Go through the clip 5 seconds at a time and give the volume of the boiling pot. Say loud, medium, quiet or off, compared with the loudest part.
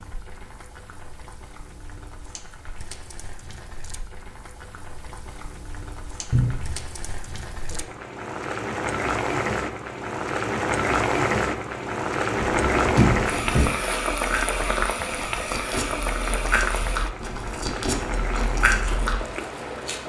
quiet, medium, loud, medium.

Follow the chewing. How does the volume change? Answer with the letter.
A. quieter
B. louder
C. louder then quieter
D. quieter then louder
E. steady
B.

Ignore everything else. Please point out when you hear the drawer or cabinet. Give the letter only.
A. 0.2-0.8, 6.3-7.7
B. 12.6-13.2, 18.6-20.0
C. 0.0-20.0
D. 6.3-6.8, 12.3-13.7
D.